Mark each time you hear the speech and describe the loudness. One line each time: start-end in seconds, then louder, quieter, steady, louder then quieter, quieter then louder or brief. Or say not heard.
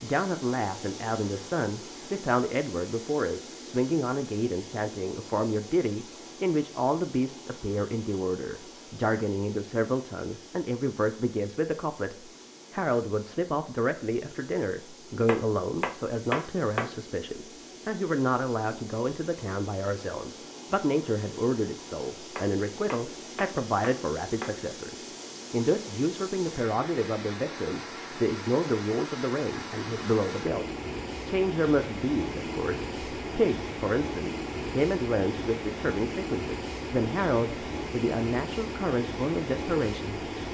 0.0-40.3 steady.